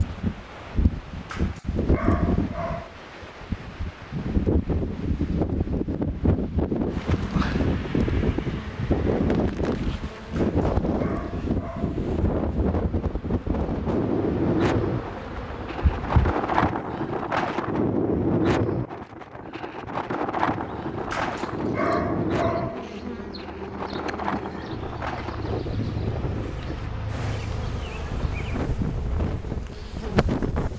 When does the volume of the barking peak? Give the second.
22 s.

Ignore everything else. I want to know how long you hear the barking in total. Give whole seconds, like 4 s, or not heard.
5 s.